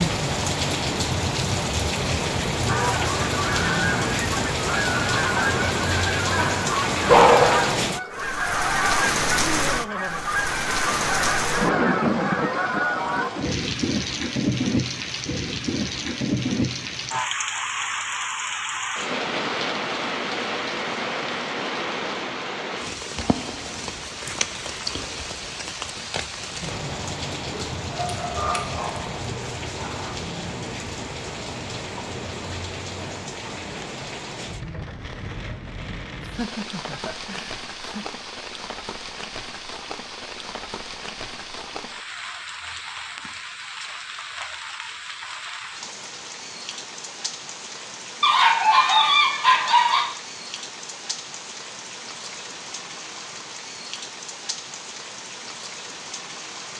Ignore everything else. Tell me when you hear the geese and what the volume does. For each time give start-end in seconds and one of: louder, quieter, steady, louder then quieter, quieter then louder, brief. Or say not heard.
2.6-13.3 steady.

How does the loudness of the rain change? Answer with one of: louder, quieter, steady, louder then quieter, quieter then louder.
quieter.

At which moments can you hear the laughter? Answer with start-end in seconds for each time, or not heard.
9.6-10.3, 36.2-38.0.